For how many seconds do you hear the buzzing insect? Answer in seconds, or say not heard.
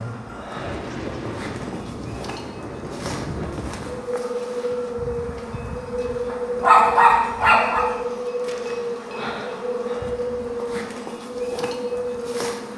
13 s.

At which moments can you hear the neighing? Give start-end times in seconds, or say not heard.
not heard.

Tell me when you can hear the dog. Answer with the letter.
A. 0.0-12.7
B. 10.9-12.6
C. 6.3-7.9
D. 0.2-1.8
C.